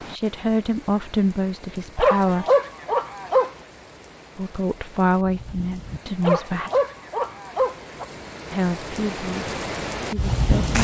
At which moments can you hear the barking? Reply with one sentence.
The barking can be heard from 1.9 to 3.5 s and from 6.2 to 8.1 s.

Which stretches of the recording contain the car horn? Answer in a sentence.
You can't hear the car horn here.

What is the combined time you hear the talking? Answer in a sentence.
You can hear the talking for 7 seconds altogether.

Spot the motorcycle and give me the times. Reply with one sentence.
You can't hear the motorcycle here.